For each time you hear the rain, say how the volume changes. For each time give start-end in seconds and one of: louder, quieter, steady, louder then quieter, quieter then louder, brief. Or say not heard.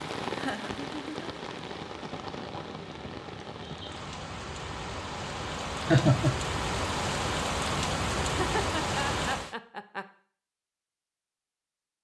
0.0-9.6 louder.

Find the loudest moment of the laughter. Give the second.
6 s.